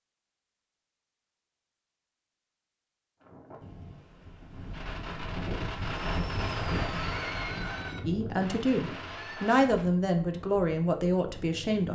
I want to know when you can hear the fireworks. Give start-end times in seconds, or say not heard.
4.7-9.9.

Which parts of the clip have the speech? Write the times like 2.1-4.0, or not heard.
8.1-11.9.